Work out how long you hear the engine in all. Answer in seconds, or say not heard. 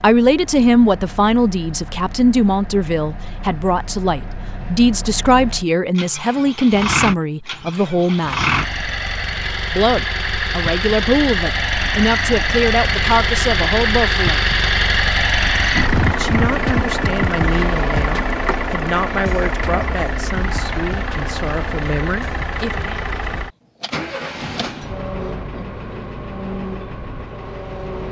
28 s.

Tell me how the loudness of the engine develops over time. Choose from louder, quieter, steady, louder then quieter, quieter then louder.
louder then quieter.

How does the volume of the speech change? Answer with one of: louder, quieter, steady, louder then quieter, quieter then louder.
quieter.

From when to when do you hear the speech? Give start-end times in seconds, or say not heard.
0.0-8.4, 9.7-14.5, 16.1-23.0.